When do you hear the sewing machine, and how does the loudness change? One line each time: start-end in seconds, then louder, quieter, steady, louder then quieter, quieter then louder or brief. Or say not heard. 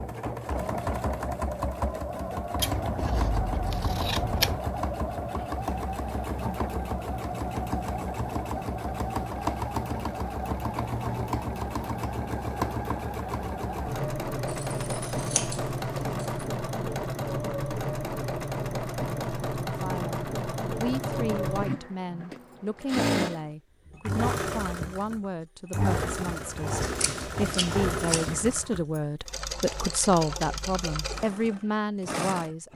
0.0-32.5 steady.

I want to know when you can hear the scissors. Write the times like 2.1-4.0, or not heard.
2.5-4.6, 14.4-16.4, 26.8-28.4.